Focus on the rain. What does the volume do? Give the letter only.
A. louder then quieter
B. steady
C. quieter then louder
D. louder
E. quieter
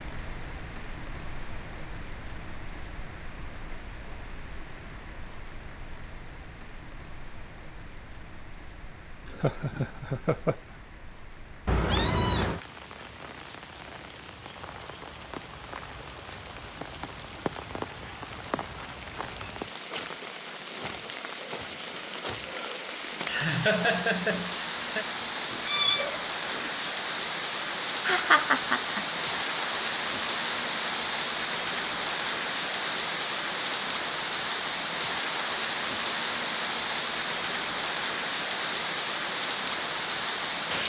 D.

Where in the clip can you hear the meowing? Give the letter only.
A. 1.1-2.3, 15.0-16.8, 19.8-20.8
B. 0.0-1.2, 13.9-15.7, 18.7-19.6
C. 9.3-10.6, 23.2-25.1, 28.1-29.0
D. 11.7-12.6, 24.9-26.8
D.